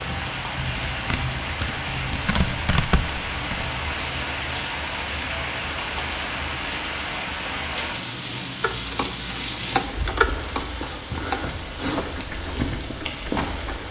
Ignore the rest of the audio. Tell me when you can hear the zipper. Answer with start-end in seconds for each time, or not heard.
not heard.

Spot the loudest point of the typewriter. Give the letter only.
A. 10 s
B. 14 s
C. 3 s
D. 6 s
A.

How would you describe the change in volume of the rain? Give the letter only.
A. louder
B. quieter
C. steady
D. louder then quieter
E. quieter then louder
C.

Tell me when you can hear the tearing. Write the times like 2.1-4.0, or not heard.
1.1-3.7.